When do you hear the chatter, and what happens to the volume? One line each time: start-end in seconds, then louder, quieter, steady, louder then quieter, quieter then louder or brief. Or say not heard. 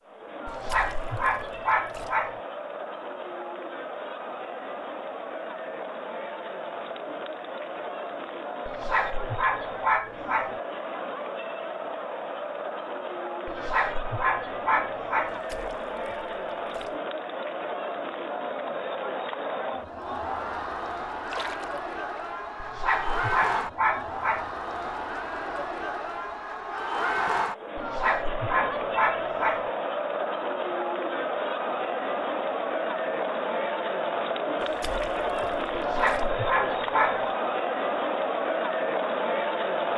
0.0-39.9 louder.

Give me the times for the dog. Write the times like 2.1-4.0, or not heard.
0.5-2.4, 8.7-10.6, 13.4-15.3, 22.6-24.5, 27.8-29.6, 35.8-37.2.